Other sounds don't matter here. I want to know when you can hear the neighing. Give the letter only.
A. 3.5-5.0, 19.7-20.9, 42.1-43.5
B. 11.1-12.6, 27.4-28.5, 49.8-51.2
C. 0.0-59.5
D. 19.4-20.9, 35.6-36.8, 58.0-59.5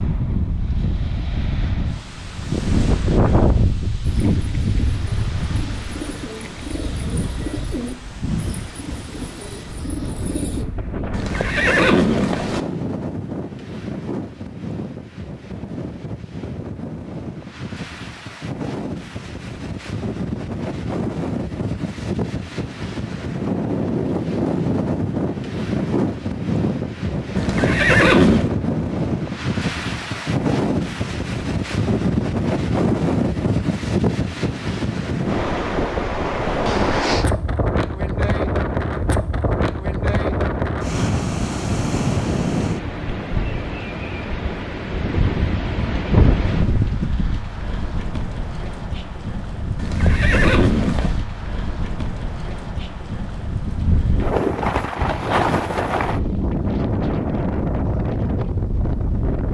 B.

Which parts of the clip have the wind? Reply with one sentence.
You can hear the wind from 0.0 to 59.5 s.